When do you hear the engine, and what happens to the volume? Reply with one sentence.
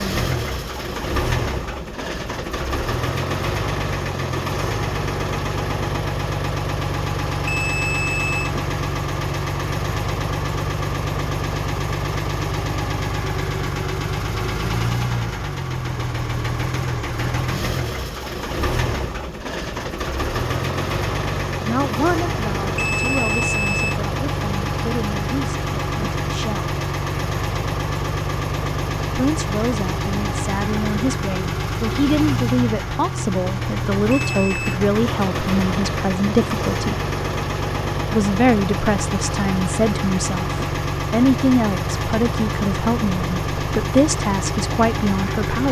You can hear the engine from 0.0 to 45.6 s, at a steady volume.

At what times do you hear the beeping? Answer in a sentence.
You can hear the beeping from 7.5 to 8.5 s, from 22.8 to 23.9 s and from 34.1 to 34.6 s.